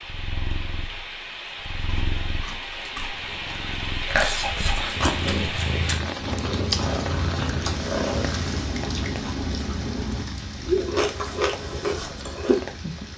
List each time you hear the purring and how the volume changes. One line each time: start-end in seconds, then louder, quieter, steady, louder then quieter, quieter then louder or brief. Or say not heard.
0.0-13.1 louder then quieter.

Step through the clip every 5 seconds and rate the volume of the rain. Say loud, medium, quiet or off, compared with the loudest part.
loud, loud, medium.